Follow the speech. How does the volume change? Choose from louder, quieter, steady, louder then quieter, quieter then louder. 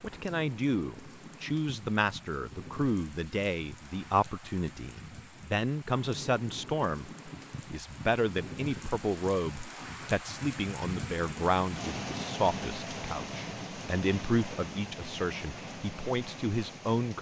steady.